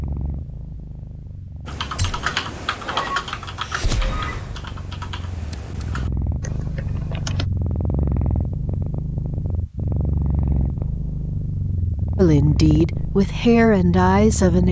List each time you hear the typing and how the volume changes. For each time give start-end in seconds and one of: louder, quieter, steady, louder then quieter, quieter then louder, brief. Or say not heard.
1.6-7.5 quieter.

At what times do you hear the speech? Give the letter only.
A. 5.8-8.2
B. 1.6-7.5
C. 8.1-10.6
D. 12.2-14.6
D.